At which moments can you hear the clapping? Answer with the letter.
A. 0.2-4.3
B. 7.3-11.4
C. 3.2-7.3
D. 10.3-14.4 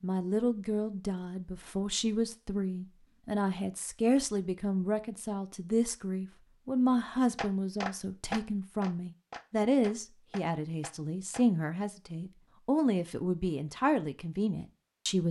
B.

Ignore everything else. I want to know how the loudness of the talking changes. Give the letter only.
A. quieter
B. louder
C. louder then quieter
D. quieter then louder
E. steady
E.